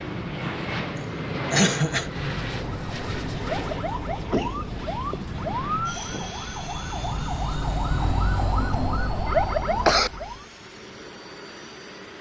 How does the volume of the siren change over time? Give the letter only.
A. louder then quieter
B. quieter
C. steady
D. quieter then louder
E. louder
E.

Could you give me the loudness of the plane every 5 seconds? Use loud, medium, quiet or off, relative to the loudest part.
loud, medium, medium.